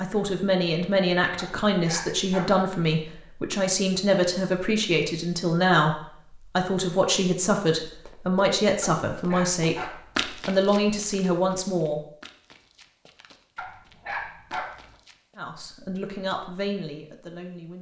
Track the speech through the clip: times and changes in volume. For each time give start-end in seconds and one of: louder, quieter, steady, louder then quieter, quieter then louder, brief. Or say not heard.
0.0-9.8 steady
10.4-12.0 brief
15.3-17.7 brief.